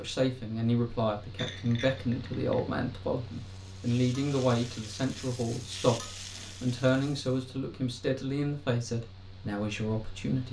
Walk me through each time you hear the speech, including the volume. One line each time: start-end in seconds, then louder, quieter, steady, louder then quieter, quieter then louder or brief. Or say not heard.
0.0-10.4 steady.